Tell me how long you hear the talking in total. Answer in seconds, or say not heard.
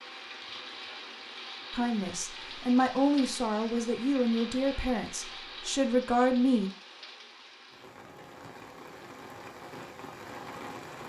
5 s.